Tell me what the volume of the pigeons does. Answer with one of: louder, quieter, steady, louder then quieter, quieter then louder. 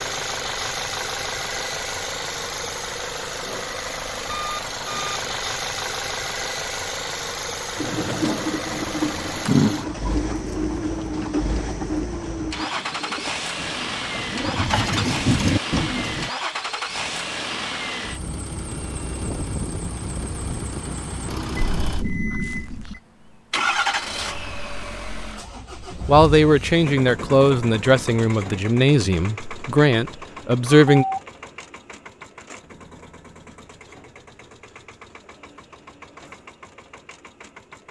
quieter then louder.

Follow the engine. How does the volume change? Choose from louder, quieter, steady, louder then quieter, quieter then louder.
quieter.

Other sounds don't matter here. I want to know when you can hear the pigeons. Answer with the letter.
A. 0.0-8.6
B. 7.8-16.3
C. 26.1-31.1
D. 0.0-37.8
B.